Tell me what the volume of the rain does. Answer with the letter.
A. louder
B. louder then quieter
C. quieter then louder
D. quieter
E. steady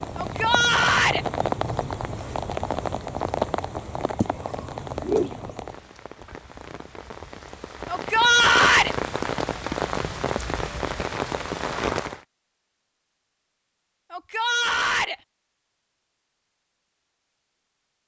E.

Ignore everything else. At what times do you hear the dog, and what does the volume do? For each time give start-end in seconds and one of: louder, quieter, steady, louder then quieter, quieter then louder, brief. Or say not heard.
not heard.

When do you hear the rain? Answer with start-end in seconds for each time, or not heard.
0.0-12.2.